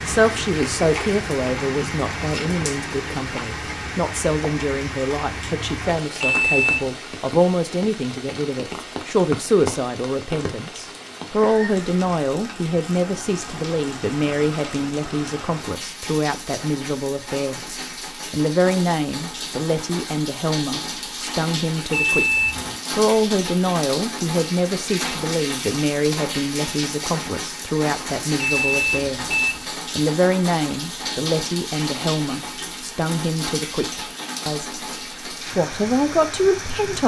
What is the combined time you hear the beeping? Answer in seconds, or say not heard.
3 s.